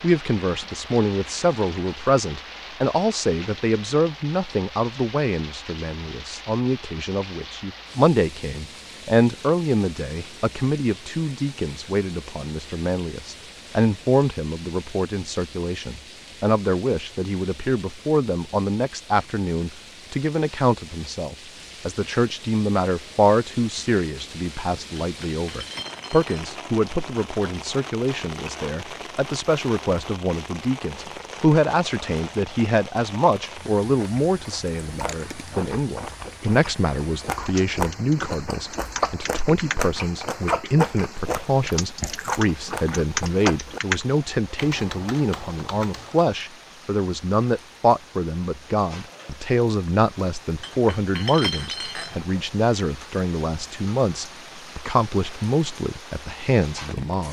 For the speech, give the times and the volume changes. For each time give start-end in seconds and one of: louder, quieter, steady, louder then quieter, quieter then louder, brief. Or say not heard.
0.0-57.2 steady.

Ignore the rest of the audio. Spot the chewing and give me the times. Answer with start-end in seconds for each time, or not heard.
34.0-43.8.